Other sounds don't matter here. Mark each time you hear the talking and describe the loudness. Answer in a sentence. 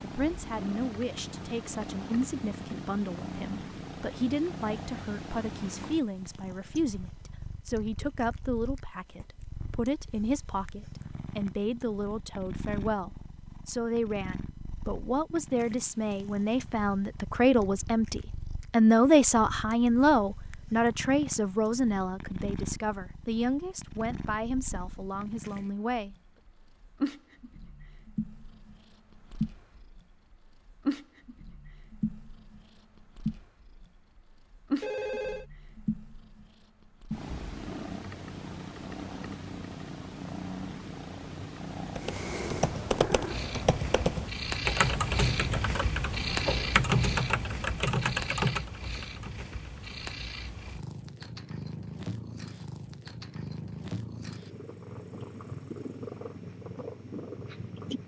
You can hear the talking from 0.0 to 26.1 s, getting louder then quieter.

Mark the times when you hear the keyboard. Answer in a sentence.
The keyboard can be heard from 42.0 to 50.0 s.